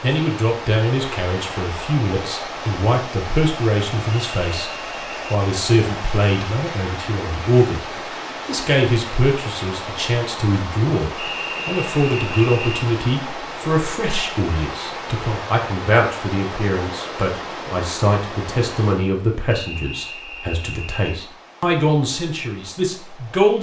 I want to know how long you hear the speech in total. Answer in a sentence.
The speech can be heard for 22 seconds in total.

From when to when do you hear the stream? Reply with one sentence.
The stream can be heard from 0.0 to 23.5 s.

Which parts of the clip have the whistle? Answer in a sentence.
You can hear the whistle from 4.1 to 5.3 s, from 11.2 to 12.8 s and from 19.5 to 21.1 s.